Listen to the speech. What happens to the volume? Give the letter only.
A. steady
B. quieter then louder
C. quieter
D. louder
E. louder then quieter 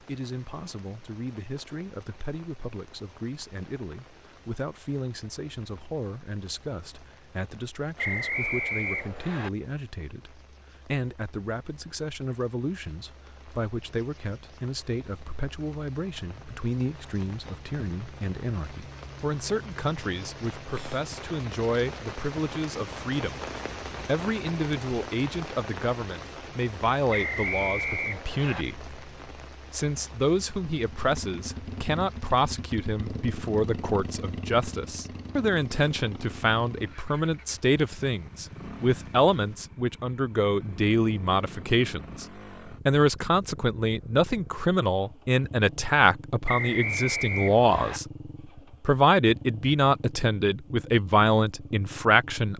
D.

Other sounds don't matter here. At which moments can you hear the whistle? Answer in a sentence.
The whistle can be heard from 8.0 to 9.5 s, from 27.1 to 28.6 s and from 46.5 to 48.0 s.